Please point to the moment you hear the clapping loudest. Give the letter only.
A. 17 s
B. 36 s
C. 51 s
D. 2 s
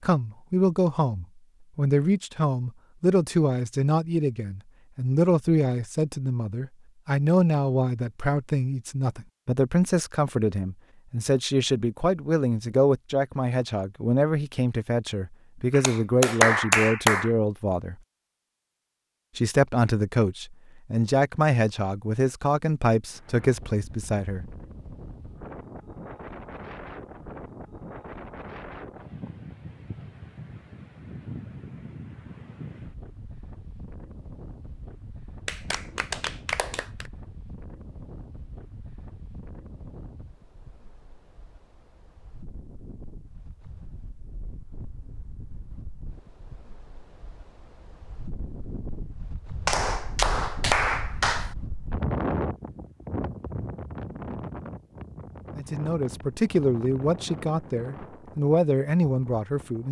A.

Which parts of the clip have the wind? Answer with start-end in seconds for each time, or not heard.
23.1-59.8.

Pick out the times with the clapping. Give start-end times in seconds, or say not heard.
15.7-17.3, 35.5-37.1, 49.6-51.5.